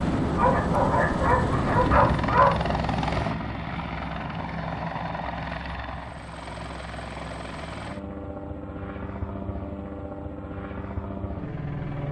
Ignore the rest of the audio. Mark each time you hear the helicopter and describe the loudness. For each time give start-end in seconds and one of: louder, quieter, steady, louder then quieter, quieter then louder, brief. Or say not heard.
0.0-12.0 quieter.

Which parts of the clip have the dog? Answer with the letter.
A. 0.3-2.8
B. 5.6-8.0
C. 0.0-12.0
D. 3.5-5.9
A.